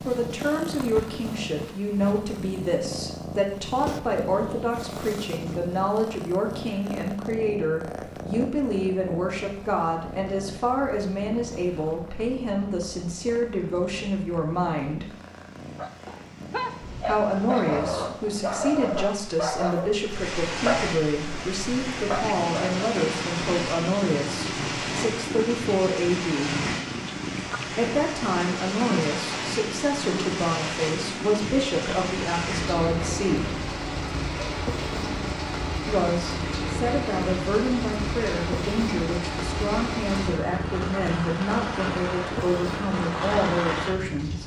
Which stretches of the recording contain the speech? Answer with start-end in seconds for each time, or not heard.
0.0-15.1, 16.9-26.6, 27.7-33.6, 35.9-44.4.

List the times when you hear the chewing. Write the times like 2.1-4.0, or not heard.
not heard.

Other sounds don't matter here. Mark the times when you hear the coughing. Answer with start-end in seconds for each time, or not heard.
not heard.